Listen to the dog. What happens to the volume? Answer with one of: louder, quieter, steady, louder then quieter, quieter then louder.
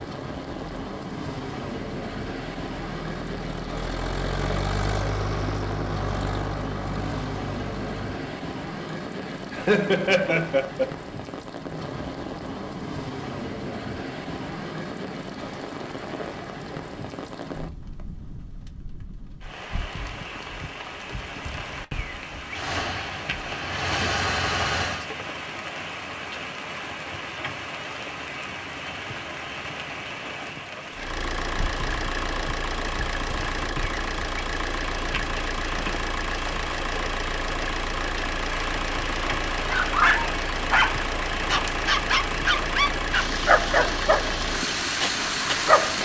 quieter.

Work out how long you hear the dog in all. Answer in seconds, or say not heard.
6 s.